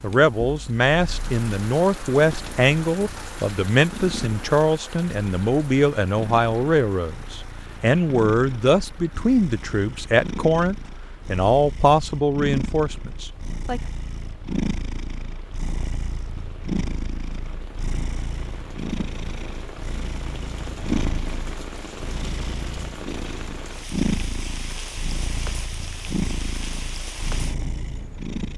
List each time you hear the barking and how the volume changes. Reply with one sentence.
The barking can't be heard in this clip.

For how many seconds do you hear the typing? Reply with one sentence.
The typing can't be heard in this clip.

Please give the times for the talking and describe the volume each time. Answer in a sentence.
The talking can be heard from 0.0 to 13.8 s, at a steady volume.